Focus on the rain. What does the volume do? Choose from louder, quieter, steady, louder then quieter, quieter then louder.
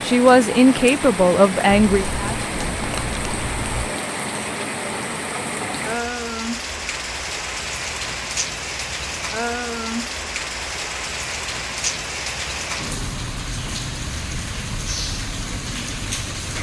steady.